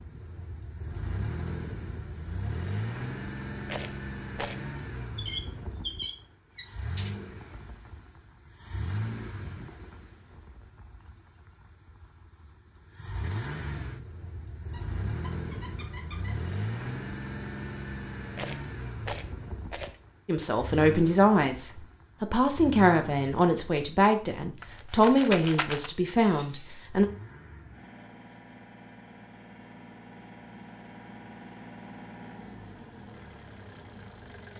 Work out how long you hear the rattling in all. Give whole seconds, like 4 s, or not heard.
4 s.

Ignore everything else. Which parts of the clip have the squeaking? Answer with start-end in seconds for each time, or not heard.
5.2-7.2, 14.7-16.4, 26.2-26.9.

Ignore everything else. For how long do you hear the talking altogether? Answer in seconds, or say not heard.
7 s.